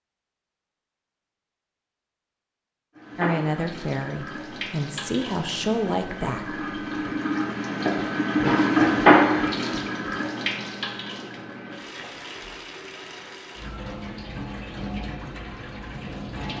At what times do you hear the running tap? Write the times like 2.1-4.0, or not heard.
3.0-16.5.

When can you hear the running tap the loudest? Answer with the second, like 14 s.
9 s.